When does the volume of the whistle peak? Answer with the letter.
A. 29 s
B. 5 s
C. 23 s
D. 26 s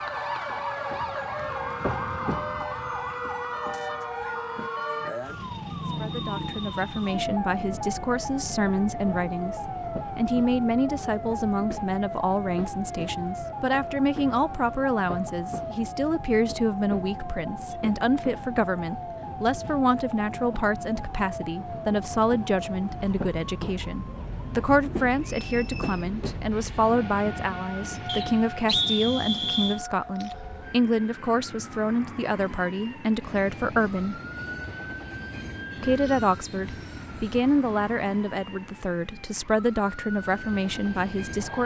A.